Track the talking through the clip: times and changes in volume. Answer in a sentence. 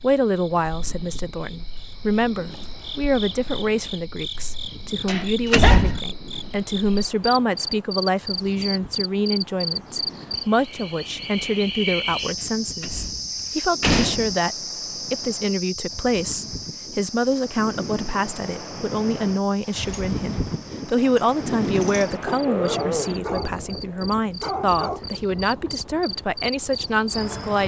The talking can be heard from 0.0 to 27.6 s, at a steady volume.